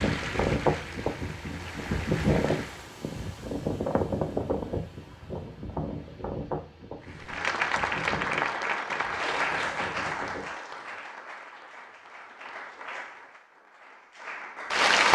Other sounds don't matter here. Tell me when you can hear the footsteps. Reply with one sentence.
The footsteps can't be heard in this clip.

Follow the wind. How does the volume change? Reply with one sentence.
The volume of the wind goes down.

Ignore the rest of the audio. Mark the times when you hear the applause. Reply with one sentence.
The applause can be heard from 0.0 to 2.9 s and from 7.1 to 15.1 s.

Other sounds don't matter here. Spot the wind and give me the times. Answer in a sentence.
The wind can be heard from 0.0 to 10.4 s.